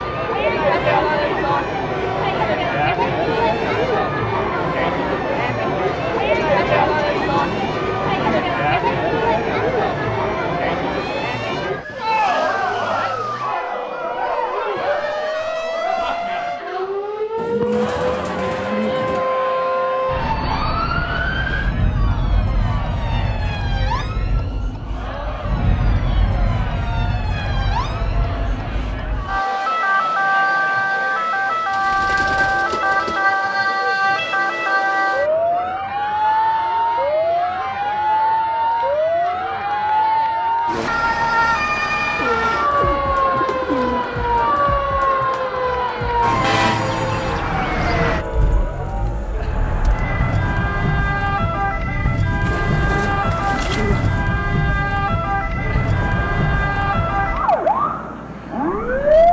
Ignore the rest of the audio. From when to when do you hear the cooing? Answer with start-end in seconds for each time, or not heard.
6.0-8.6, 17.4-19.3, 31.7-33.2, 42.1-44.7, 52.4-54.2.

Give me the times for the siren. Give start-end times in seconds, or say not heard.
0.0-59.2.